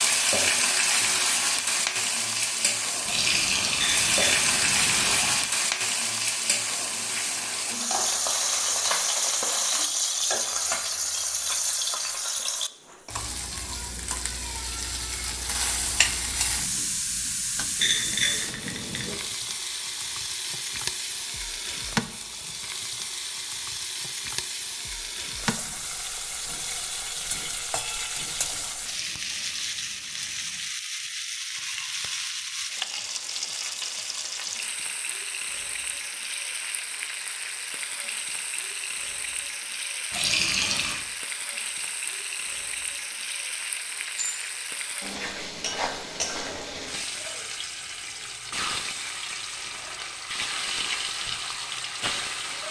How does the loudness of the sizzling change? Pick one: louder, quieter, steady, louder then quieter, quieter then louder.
quieter.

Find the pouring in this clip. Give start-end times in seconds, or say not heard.
3.0-5.5, 28.8-30.7, 40.1-41.0.